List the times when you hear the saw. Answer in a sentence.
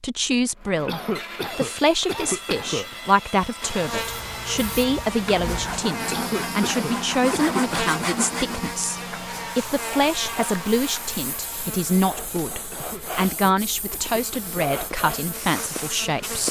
The saw can be heard from 0.6 to 8.8 s.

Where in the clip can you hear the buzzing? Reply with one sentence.
You can hear the buzzing from 3.6 to 16.4 s.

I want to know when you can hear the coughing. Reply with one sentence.
You can hear the coughing from 0.8 to 3.0 s, from 6.1 to 7.8 s and from 12.7 to 14.8 s.